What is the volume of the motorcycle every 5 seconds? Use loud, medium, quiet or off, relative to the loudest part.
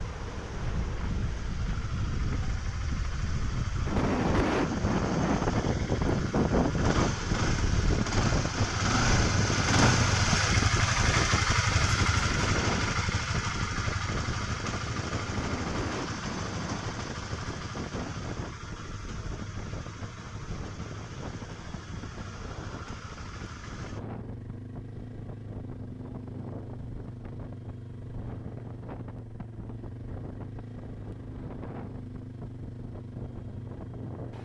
quiet, loud, loud, medium, quiet, quiet, quiet.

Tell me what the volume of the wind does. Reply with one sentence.
The loudness of the wind goes down.